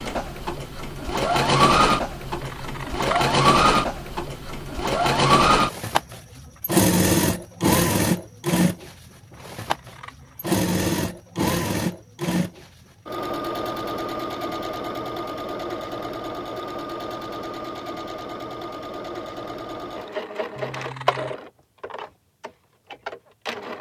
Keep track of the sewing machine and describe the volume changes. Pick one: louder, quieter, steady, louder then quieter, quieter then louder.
quieter.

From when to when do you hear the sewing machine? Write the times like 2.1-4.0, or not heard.
0.0-23.7.